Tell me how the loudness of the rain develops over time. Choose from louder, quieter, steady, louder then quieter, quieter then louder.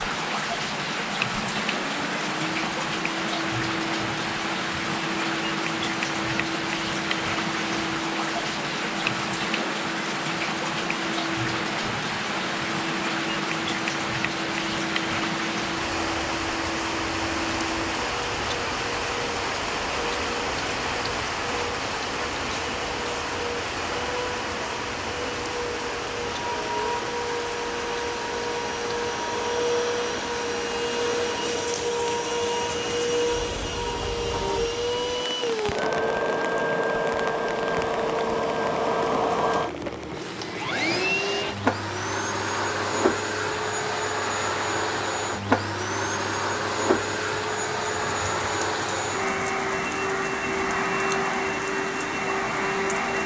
quieter.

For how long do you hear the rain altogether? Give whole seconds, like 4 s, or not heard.
53 s.